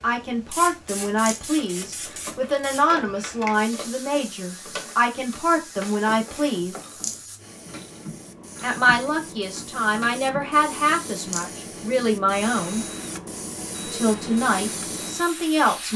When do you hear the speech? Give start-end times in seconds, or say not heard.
0.0-6.8, 8.6-12.8, 13.8-15.9.